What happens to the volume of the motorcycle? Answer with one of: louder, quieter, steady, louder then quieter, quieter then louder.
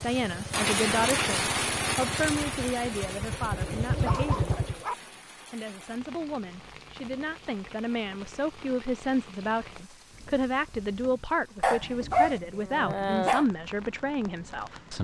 louder.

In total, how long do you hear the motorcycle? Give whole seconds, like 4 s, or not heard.
5 s.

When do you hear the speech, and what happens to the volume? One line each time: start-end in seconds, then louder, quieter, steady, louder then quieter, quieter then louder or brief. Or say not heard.
0.0-15.0 quieter then louder.